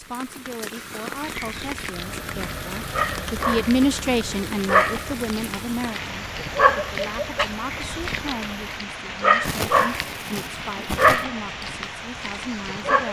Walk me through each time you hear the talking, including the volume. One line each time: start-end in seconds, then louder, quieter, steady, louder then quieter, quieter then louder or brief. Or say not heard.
0.0-13.0 louder then quieter.